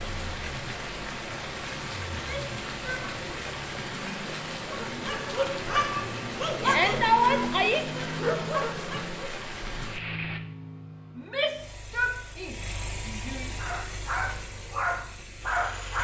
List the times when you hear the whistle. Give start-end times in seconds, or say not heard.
not heard.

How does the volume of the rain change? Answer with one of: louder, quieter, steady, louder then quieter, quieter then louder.
steady.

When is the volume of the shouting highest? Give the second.
7 s.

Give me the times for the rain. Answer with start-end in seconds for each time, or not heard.
0.0-10.4.